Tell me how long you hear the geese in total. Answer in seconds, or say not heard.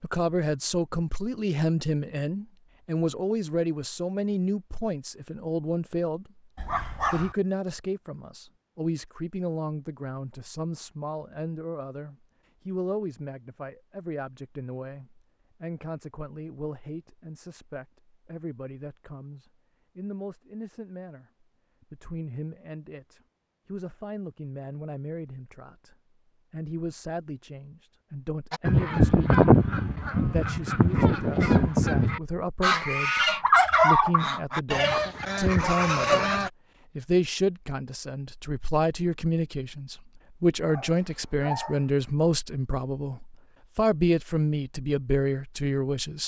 8 s.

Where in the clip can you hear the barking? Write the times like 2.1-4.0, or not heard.
6.5-7.3, 40.6-41.9.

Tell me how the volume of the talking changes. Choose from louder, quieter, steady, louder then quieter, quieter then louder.
quieter then louder.